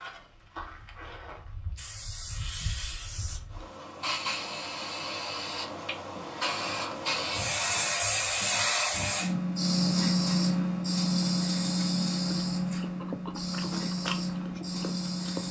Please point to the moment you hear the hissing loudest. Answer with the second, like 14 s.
10 s.